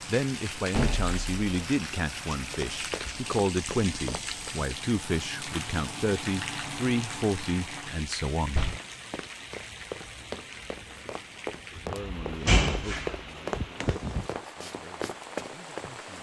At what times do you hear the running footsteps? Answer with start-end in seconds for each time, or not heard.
2.5-4.5, 8.7-15.9.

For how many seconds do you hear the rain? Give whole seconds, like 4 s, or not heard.
16 s.